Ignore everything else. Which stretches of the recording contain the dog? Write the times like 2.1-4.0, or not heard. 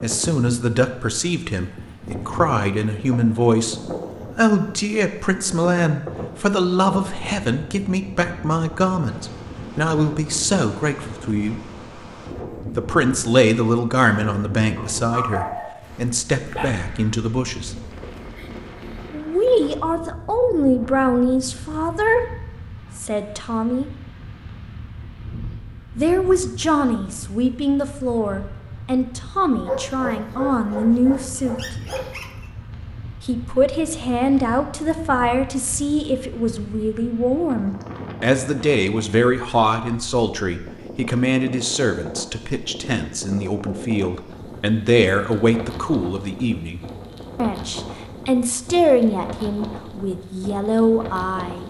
14.8-16.7, 29.6-32.5.